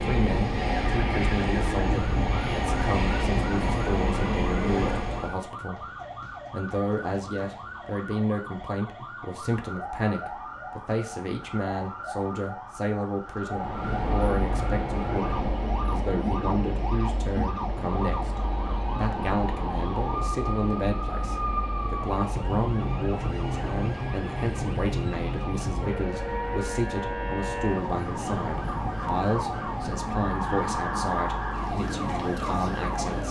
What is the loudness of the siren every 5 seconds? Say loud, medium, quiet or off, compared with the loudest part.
medium, medium, medium, medium, loud, loud, loud.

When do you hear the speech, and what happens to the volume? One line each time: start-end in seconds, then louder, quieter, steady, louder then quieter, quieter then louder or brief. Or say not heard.
0.0-5.8 steady
6.5-33.2 steady.